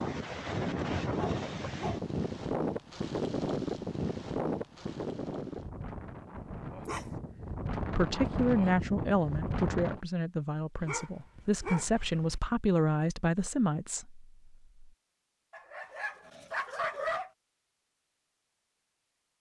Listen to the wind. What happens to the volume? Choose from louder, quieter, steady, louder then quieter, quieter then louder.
quieter then louder.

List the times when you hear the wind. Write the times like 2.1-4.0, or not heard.
0.0-10.0.